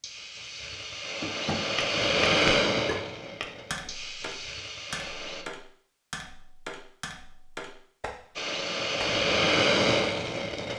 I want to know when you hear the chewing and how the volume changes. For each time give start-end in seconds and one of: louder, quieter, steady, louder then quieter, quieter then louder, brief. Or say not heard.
not heard.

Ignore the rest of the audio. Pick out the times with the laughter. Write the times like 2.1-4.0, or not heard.
not heard.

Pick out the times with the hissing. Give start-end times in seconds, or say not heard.
0.0-5.5, 8.3-10.7.